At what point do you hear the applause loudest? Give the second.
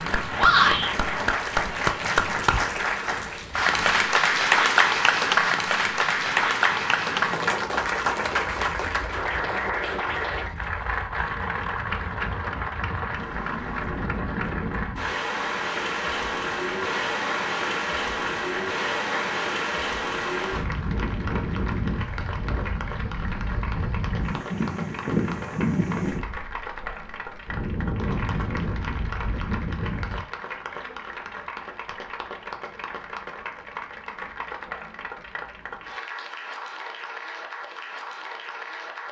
5 s.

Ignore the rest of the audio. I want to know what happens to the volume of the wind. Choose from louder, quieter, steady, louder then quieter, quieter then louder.
louder.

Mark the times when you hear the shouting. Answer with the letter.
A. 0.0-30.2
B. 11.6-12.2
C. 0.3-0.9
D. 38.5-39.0
C.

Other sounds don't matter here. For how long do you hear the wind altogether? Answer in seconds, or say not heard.
30 s.